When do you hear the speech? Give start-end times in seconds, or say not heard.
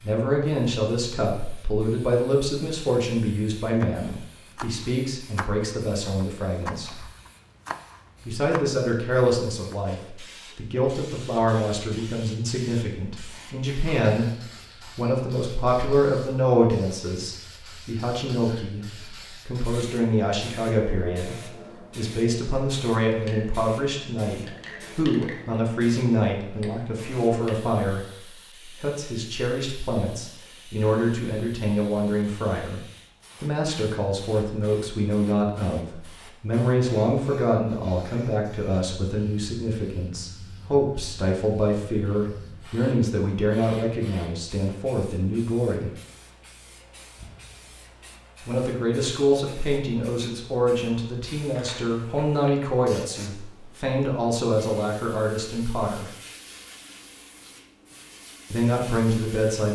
0.0-7.0, 8.2-32.8, 33.4-45.9, 48.5-56.1, 58.5-59.7.